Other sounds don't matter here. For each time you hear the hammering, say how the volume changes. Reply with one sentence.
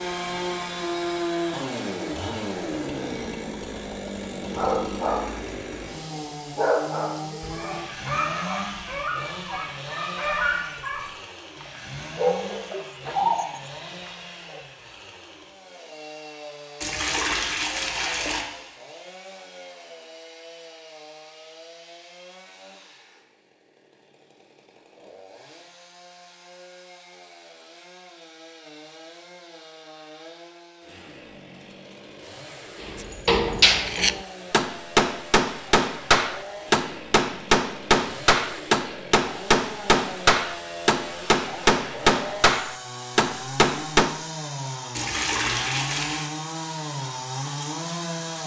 The hammering can be heard from 32.8 to 44.1 s, at a steady volume.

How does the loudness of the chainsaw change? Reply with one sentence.
The loudness of the chainsaw goes down, then up.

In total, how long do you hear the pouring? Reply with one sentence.
You can hear the pouring for 3 seconds altogether.